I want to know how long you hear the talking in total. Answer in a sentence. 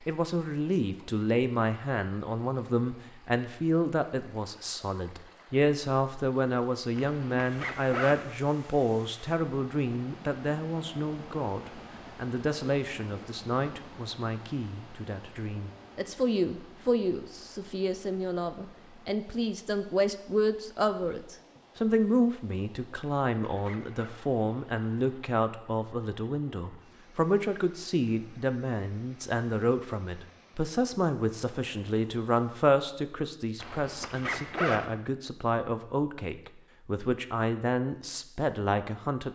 You can hear the talking for 39 seconds altogether.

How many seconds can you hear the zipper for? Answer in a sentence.
You can hear the zipper for 4 seconds altogether.